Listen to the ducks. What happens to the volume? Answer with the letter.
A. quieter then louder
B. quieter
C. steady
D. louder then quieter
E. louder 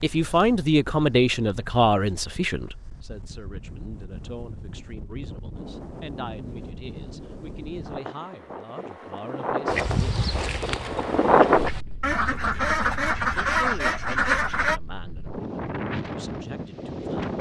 A.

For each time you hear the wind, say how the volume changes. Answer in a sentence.
The wind can be heard from 0.0 to 17.3 s, getting louder then quieter.